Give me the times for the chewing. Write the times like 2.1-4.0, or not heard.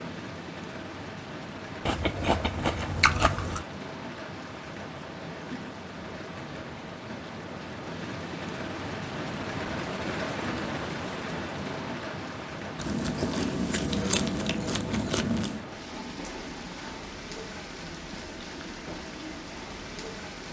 1.9-3.6, 12.8-15.6.